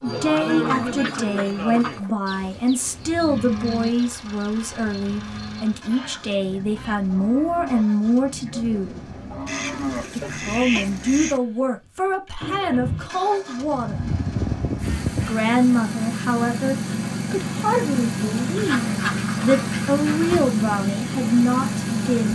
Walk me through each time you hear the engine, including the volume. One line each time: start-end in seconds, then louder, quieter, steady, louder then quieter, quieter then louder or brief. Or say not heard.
3.4-22.3 louder.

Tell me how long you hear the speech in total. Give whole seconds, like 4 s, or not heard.
20 s.